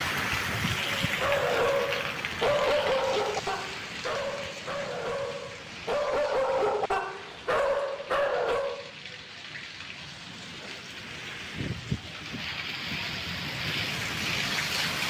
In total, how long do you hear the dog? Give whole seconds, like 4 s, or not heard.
8 s.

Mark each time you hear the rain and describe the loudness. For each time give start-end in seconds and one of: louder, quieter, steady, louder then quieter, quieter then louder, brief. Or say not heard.
0.0-15.0 quieter then louder.